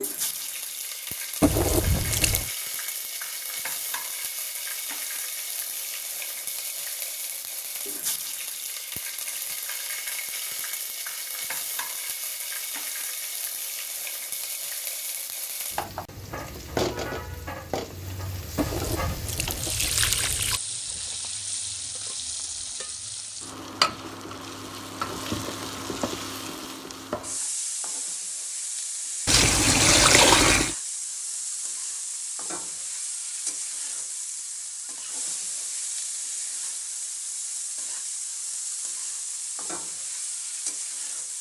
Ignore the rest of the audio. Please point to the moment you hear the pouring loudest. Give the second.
30 s.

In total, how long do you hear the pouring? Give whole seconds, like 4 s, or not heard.
5 s.